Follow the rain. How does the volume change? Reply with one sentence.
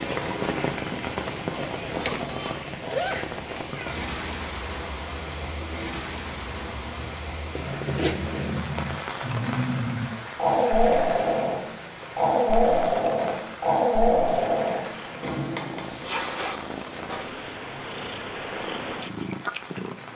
The loudness of the rain goes down.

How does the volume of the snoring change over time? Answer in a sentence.
The volume of the snoring goes up.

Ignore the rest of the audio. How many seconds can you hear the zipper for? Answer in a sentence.
You can hear the zipper for 4 seconds altogether.